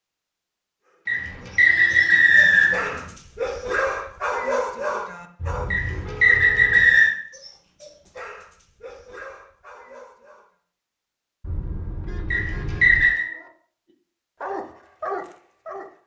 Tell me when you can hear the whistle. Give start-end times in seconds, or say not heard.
1.1-2.9, 5.7-7.2, 12.3-13.2.